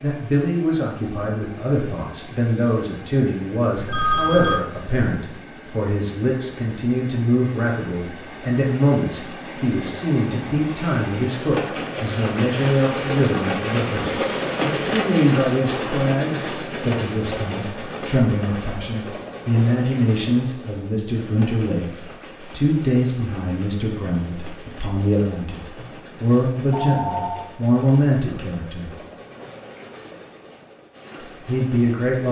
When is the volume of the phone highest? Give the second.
4 s.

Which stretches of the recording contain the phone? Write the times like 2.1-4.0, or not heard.
3.8-4.6, 25.8-27.5.